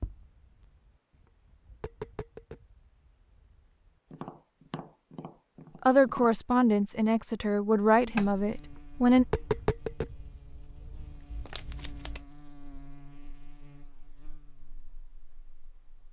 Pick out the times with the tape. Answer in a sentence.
You can hear the tape from 11.3 to 12.2 s.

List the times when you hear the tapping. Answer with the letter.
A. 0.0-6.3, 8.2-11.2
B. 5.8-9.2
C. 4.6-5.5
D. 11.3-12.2
A.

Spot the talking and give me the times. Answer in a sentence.
The talking can be heard from 5.8 to 9.2 s.